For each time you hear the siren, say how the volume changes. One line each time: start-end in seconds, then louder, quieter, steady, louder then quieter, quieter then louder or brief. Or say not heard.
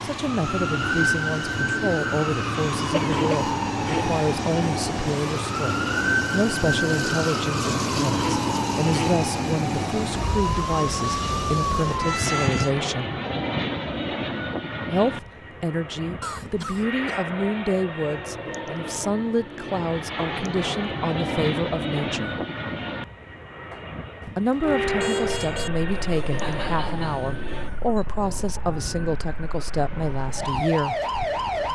0.0-12.7 steady
24.6-31.7 quieter then louder.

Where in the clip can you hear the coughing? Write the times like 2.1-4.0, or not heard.
2.9-4.0, 16.2-17.2, 26.1-28.1.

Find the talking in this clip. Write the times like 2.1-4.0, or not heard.
0.0-13.2, 14.9-22.4, 24.2-31.0.